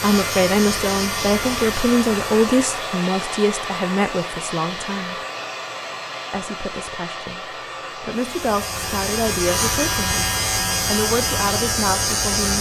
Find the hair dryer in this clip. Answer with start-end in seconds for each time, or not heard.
0.0-12.5.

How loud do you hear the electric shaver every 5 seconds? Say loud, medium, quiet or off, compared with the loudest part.
medium, loud, loud.